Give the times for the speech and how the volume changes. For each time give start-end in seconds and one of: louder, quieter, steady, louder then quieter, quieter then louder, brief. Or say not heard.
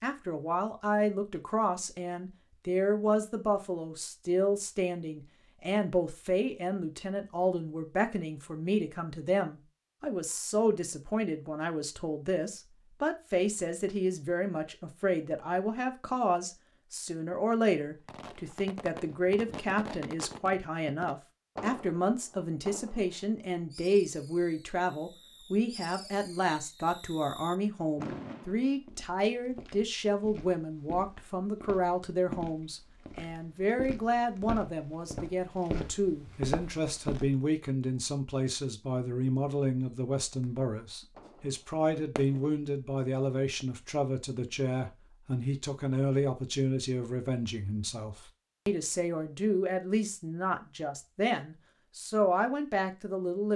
0.0-53.5 steady.